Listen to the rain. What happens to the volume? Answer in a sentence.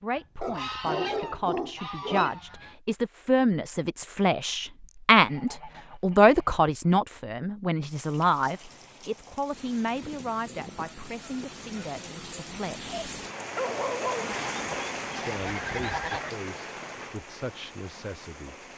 The loudness of the rain goes up, then down.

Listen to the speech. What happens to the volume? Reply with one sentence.
The volume of the speech goes up, then down.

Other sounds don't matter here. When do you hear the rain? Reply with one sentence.
The rain can be heard from 7.8 to 18.7 s.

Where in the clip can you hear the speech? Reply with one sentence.
The speech can be heard from 0.0 to 13.1 s and from 15.2 to 18.6 s.